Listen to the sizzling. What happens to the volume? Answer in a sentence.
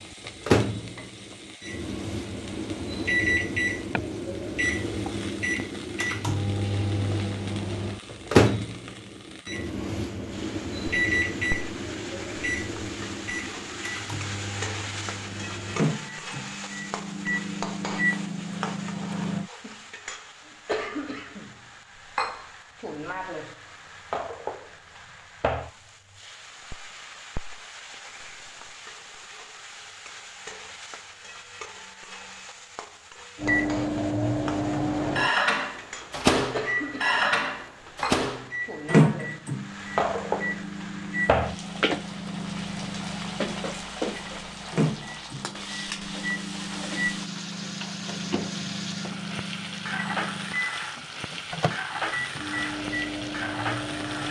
The volume of the sizzling goes up.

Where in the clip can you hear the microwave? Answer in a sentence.
The microwave can be heard from 0.0 to 19.5 s and from 33.4 to 54.2 s.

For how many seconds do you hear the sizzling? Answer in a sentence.
You can hear the sizzling for 54 seconds altogether.